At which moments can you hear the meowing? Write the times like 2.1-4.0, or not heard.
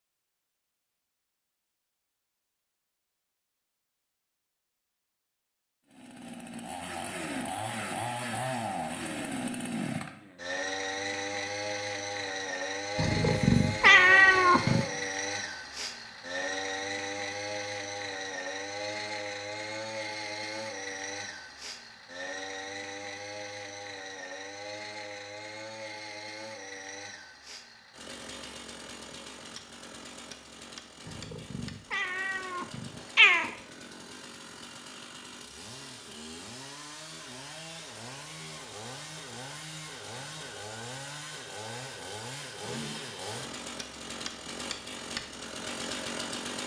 12.9-14.8, 31.1-33.5.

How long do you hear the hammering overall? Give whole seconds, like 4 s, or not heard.
not heard.